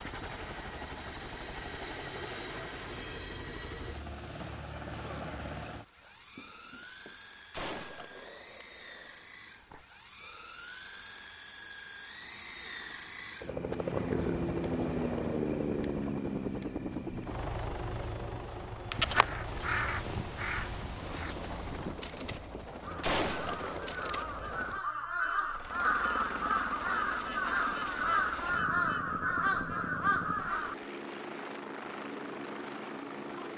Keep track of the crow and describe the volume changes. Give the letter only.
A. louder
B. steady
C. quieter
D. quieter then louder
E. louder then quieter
D.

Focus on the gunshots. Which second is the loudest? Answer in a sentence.
The loudest moment of the gunshots is at 23 seconds.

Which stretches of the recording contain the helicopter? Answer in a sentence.
The helicopter can be heard from 0.0 to 33.5 s.